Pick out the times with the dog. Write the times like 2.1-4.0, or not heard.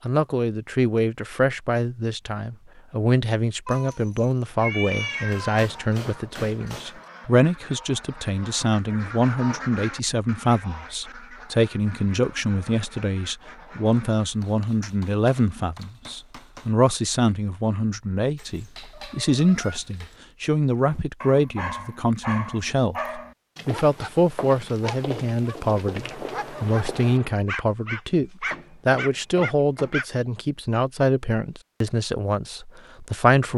20.9-30.1.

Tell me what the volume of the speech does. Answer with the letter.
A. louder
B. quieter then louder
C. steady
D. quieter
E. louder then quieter
C.